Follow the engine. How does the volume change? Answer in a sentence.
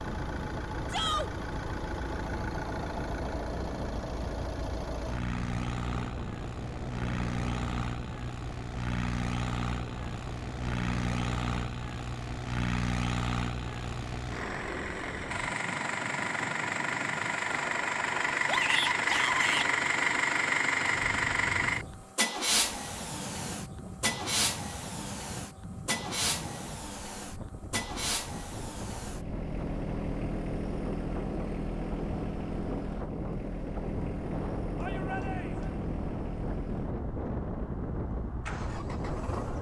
The volume of the engine goes up, then down.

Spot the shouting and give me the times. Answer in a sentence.
The shouting can be heard from 0.9 to 1.3 s, from 18.4 to 19.7 s and from 34.8 to 35.8 s.